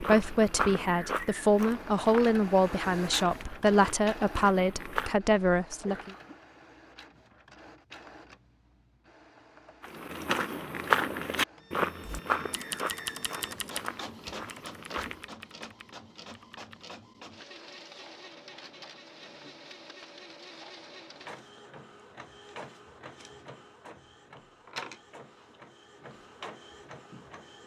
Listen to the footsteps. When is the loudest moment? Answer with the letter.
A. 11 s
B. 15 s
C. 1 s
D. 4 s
A.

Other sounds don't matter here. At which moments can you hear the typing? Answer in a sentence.
You can hear the typing from 12.0 to 16.9 s.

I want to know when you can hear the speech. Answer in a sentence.
The speech can be heard from 0.0 to 6.1 s.